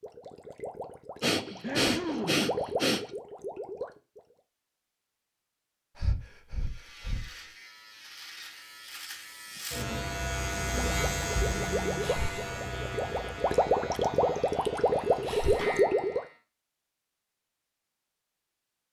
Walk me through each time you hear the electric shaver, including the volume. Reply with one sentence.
The electric shaver can be heard from 6.5 to 16.4 s, getting louder then quieter.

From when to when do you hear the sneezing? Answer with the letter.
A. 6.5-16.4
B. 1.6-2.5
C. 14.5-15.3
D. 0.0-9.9
B.